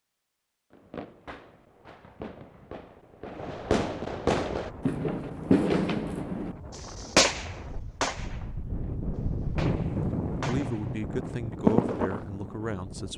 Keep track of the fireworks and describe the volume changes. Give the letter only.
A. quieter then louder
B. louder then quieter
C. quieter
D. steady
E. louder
E.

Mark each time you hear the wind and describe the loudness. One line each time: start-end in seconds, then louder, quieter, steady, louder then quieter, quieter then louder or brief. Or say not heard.
4.5-13.1 louder then quieter.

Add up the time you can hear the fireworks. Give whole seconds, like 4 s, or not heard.
11 s.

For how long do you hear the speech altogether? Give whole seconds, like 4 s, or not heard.
3 s.